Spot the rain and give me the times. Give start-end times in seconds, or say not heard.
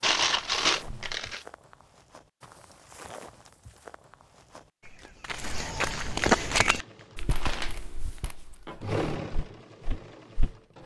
not heard.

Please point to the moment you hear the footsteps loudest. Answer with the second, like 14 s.
6 s.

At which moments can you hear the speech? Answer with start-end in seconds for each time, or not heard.
not heard.